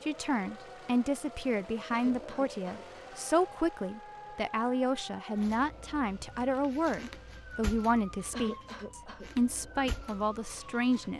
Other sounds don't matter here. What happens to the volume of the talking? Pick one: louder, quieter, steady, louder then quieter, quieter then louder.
steady.